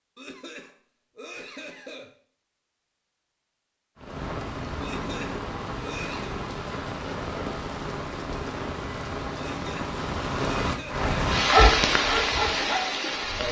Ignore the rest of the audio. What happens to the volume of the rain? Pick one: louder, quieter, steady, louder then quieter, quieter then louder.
louder.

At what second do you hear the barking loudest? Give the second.
12 s.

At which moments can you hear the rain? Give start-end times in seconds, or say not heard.
4.0-13.4.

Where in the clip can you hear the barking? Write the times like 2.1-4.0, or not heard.
11.0-13.4.